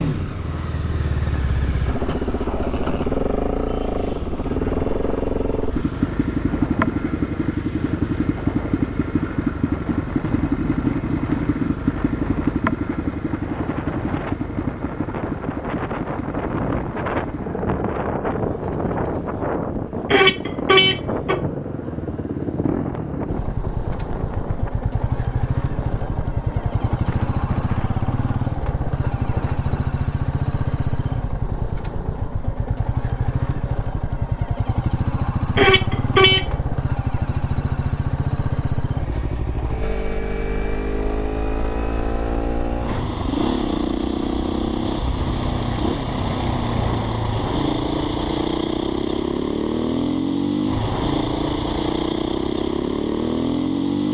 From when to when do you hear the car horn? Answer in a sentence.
You can hear the car horn from 20.1 to 21.4 s and from 35.5 to 36.5 s.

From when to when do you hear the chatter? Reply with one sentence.
You can't hear the chatter here.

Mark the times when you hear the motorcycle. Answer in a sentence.
The motorcycle can be heard from 0.0 to 54.0 s.